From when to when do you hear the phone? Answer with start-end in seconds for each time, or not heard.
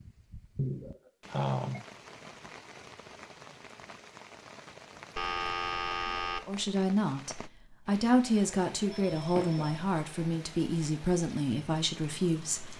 0.6-1.9, 5.2-6.4, 8.8-10.2.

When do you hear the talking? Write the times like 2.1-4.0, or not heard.
6.5-12.7.